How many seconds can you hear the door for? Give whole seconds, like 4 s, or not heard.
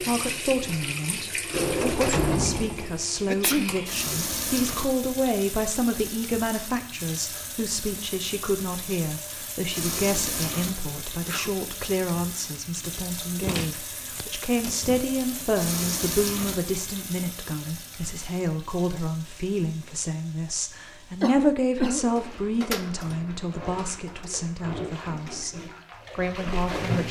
6 s.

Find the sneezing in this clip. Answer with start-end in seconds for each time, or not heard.
3.2-3.8, 10.7-11.5, 21.2-22.1.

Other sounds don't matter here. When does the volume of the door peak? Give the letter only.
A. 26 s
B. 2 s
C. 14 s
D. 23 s
B.